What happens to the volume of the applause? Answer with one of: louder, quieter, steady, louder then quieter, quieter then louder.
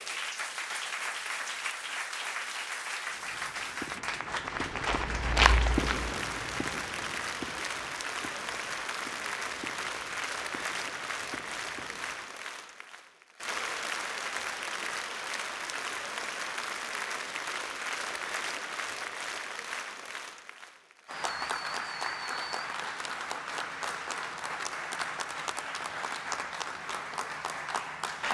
steady.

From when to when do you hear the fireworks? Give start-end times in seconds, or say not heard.
3.0-12.3.